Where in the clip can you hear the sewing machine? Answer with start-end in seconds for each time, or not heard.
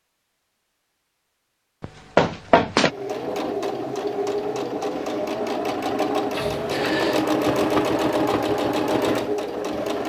2.8-10.0.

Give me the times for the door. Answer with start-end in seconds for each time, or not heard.
1.8-2.9, 6.3-7.2.